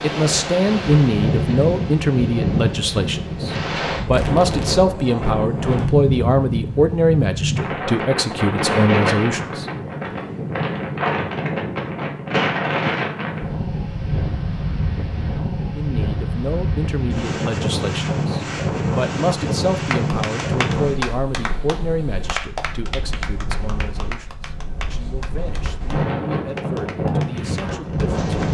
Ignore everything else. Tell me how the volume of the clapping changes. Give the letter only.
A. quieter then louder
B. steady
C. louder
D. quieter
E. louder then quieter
D.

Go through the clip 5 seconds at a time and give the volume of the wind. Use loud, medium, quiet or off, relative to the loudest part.
loud, loud, loud, loud, medium, loud.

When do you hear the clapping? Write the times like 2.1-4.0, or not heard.
19.9-28.4.